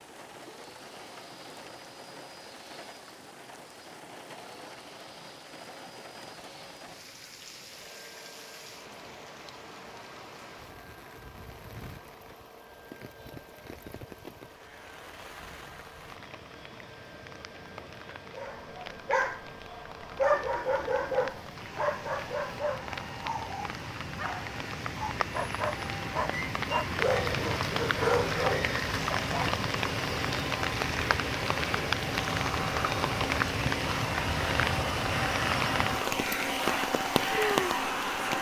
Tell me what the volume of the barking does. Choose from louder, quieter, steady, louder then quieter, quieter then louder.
quieter then louder.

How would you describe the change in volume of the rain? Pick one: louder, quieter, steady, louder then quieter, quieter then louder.
louder.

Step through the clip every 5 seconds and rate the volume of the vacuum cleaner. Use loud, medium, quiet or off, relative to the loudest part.
quiet, quiet, quiet, quiet, quiet, medium, loud, loud.